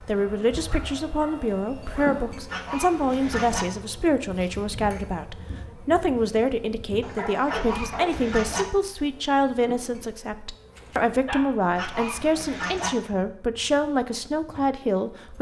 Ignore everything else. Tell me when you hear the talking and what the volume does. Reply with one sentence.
The talking can be heard from 0.0 to 15.3 s, at a steady volume.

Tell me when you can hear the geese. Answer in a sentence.
The geese can be heard from 2.5 to 3.6 s, from 7.5 to 8.7 s and from 11.8 to 12.9 s.